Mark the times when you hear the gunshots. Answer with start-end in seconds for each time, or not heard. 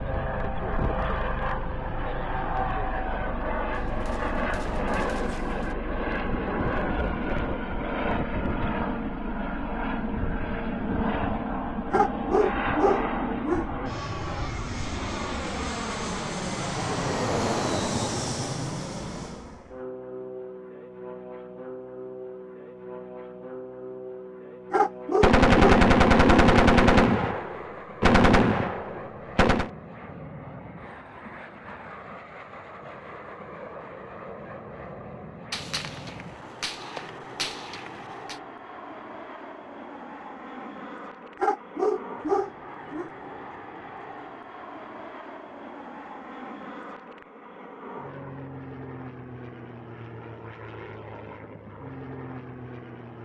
3.7-5.8, 25.2-29.7, 35.5-38.4.